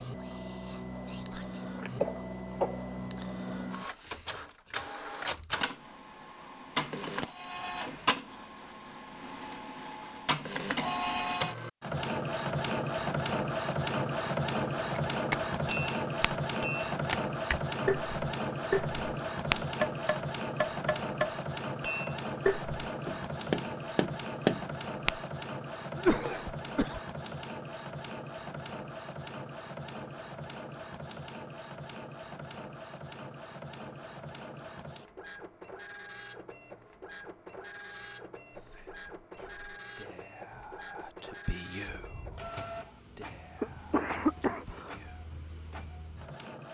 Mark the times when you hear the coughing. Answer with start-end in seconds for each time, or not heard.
1.8-2.8, 25.9-27.0, 43.6-45.0.